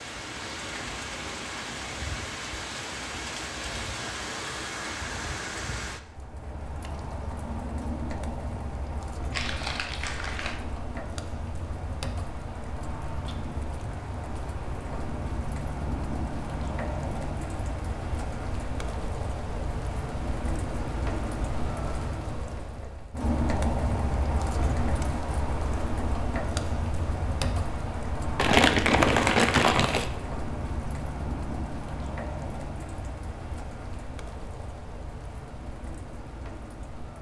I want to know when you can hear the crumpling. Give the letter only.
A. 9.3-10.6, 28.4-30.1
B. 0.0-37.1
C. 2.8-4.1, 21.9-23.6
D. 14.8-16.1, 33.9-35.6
A.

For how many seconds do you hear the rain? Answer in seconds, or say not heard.
37 s.